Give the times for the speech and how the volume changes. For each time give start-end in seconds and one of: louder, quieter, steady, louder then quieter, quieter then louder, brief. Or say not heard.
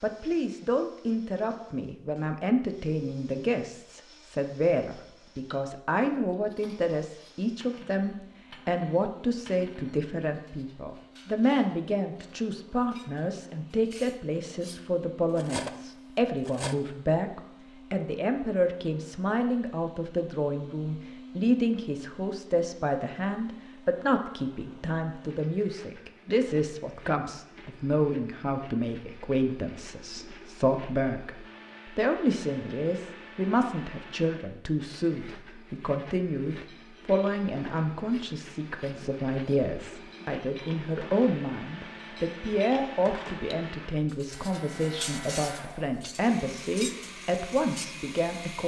0.0-48.6 steady.